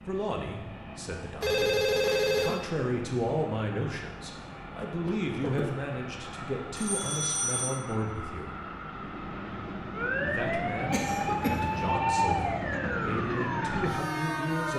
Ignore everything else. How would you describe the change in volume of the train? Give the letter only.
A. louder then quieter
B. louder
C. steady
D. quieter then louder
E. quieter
B.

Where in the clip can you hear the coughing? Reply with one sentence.
You can hear the coughing from 5.0 to 5.7 s and from 10.9 to 11.7 s.